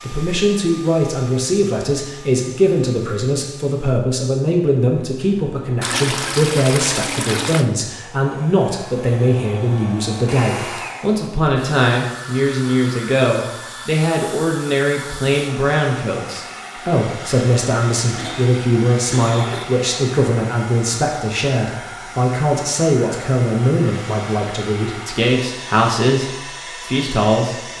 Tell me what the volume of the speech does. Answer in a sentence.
The loudness of the speech stays about the same.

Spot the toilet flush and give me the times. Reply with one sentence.
The toilet flush can be heard from 5.8 to 7.7 s.